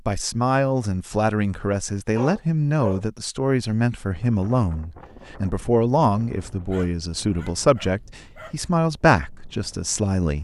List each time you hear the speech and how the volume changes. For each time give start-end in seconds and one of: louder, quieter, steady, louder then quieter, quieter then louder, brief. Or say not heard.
0.1-10.4 steady.